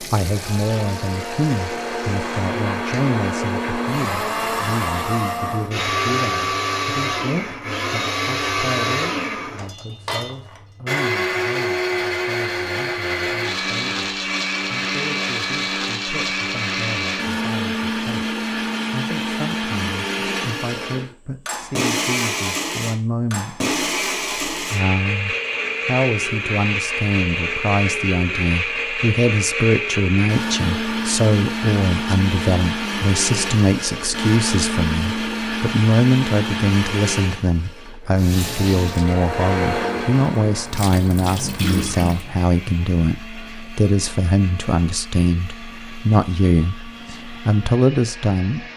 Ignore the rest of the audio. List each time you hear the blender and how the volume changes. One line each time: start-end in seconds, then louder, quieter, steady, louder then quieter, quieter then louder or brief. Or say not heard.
0.1-48.7 quieter.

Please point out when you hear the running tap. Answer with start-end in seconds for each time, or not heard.
0.0-2.5, 38.1-42.3.